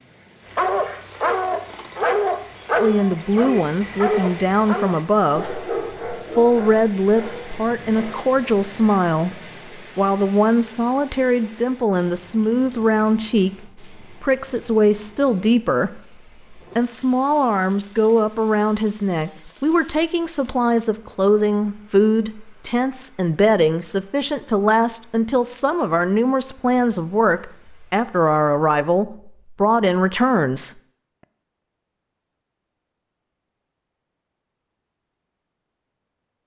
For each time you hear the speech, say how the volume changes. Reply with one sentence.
The speech can be heard briefly from 2.8 to 5.5 s; and from 6.3 to 30.7 s, at a steady volume.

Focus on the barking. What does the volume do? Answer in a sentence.
The loudness of the barking goes down.